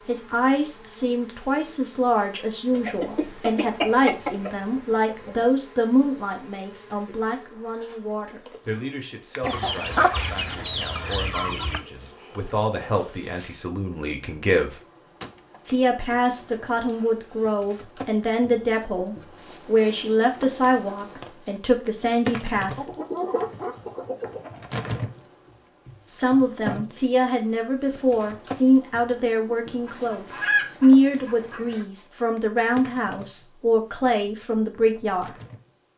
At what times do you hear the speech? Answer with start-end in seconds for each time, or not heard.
0.1-14.8, 15.7-22.9, 26.1-35.3.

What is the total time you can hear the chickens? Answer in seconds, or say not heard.
9 s.